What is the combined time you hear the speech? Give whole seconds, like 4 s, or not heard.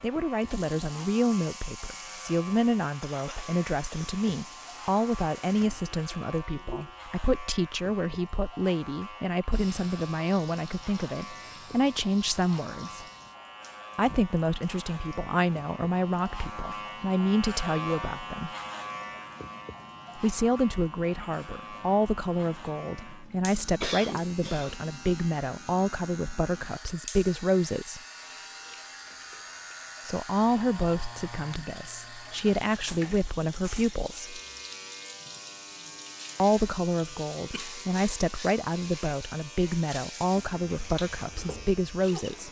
36 s.